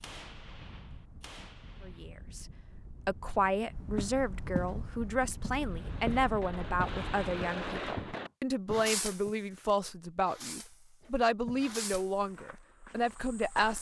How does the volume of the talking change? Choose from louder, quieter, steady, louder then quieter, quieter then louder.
steady.